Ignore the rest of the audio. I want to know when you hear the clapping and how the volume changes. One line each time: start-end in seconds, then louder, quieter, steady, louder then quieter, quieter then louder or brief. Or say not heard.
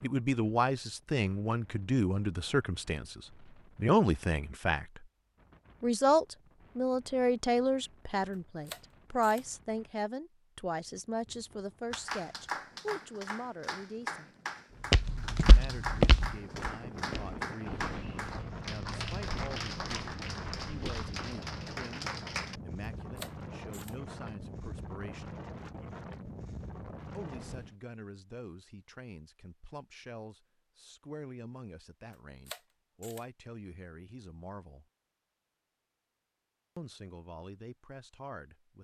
11.9-23.0 steady.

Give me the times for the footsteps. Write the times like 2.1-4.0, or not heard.
14.9-21.3.